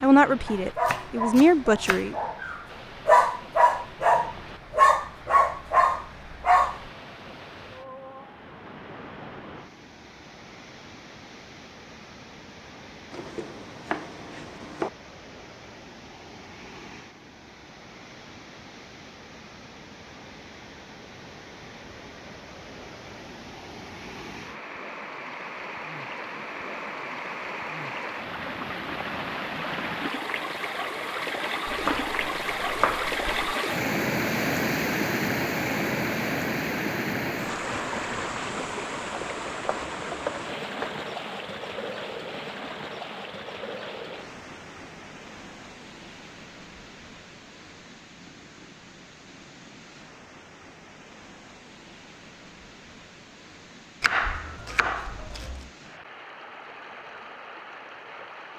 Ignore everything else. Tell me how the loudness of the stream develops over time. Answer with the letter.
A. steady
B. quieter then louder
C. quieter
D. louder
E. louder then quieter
E.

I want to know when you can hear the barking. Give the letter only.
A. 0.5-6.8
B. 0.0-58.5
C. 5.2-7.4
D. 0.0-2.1
A.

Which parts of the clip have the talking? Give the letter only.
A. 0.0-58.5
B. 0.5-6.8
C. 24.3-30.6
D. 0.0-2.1
D.